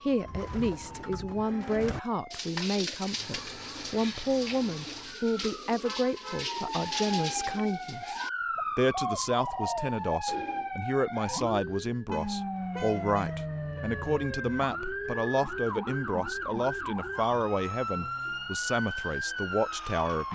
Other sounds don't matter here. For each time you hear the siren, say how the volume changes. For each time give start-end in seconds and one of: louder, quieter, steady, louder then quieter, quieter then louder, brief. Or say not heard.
0.0-20.3 louder.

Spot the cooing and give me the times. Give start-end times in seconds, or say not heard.
0.1-10.7.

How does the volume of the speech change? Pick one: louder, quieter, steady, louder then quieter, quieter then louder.
steady.